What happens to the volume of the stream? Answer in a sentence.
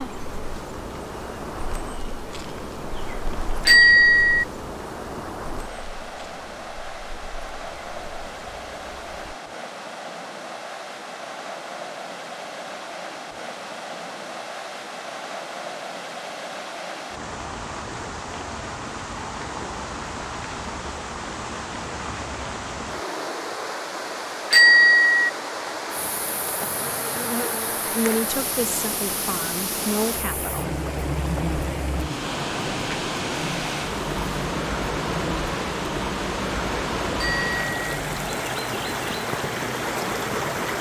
The loudness of the stream goes up.